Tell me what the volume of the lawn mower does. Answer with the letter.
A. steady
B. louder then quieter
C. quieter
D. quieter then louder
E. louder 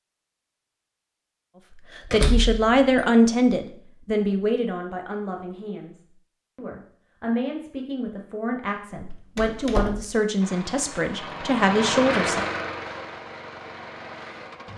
B.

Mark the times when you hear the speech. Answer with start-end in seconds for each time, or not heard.
1.9-12.4.